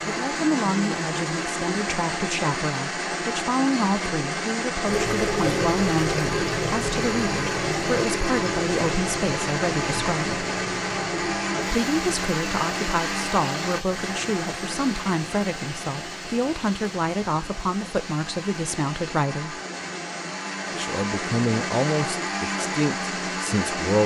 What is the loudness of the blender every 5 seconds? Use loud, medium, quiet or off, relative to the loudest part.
loud, loud, loud, medium, loud.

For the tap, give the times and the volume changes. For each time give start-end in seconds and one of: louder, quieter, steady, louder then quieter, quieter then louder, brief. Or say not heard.
4.8-18.9 quieter.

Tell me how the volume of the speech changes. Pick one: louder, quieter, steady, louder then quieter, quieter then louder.
steady.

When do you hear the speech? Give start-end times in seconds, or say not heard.
0.1-10.3, 11.7-19.6, 20.7-24.0.